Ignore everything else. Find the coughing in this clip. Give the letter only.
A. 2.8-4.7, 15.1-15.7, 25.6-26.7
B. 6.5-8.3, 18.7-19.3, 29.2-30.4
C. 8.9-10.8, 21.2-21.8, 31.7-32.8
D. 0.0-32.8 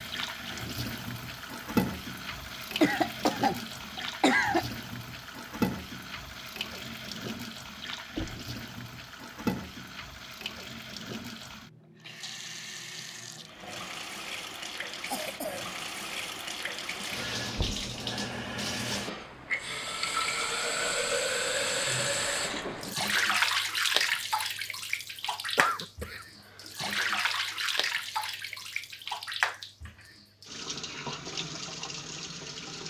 A.